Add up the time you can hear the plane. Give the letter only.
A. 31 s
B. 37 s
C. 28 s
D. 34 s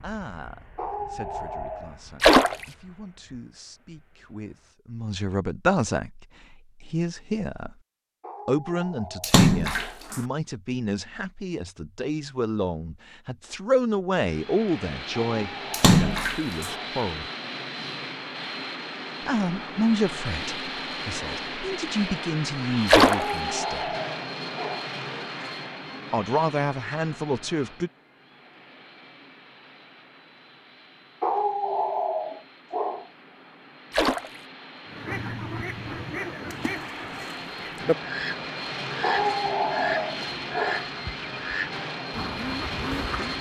D.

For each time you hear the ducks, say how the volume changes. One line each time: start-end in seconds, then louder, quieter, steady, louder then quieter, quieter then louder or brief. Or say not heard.
34.9-43.3 steady.